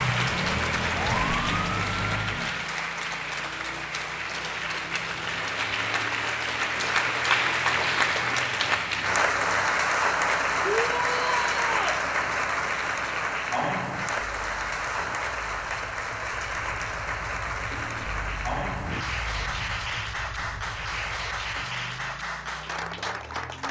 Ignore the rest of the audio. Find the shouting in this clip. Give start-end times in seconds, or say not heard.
10.6-12.0.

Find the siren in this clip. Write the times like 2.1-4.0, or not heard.
0.0-2.6.